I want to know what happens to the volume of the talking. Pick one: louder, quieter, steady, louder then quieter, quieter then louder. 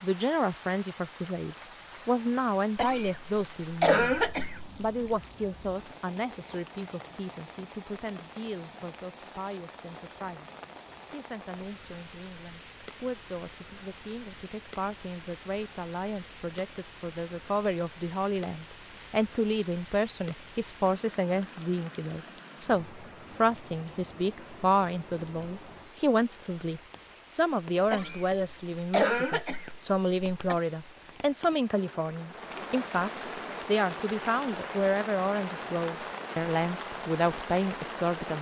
quieter then louder.